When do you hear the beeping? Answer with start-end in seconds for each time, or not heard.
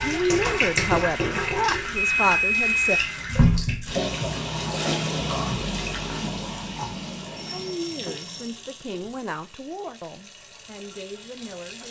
1.9-3.1, 7.3-8.6.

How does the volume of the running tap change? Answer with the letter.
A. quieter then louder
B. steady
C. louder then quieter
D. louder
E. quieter
E.